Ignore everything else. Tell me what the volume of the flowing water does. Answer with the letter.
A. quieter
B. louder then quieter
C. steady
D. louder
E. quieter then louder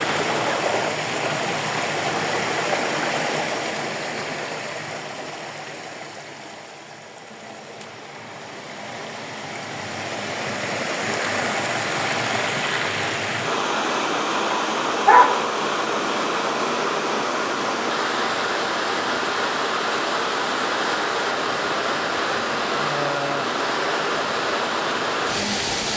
E.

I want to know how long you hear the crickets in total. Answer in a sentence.
You can't hear the crickets here.